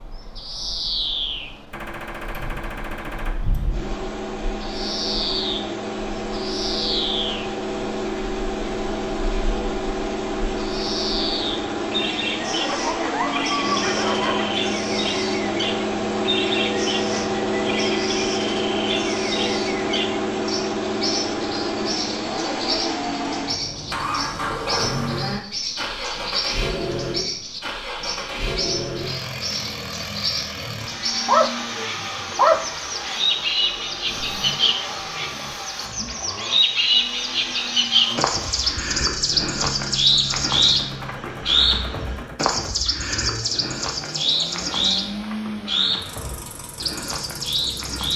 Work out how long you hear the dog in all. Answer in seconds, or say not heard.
4 s.